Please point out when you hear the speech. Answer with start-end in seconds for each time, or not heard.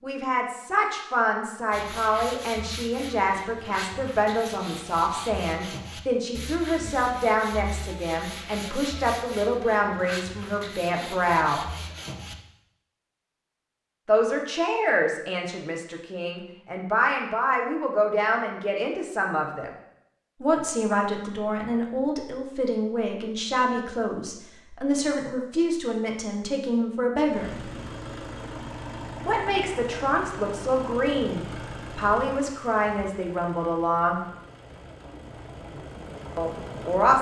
0.0-11.7, 14.1-19.7, 20.4-27.7, 29.2-34.2, 36.4-37.1.